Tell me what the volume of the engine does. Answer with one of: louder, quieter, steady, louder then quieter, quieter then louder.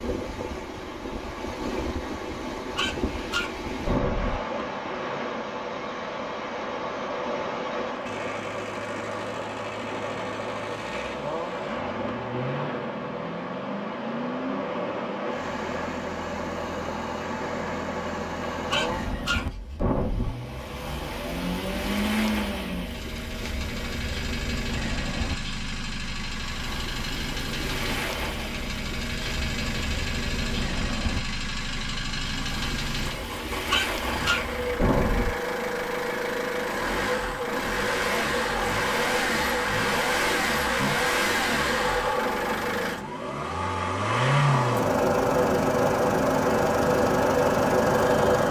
louder.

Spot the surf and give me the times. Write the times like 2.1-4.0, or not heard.
0.0-34.8.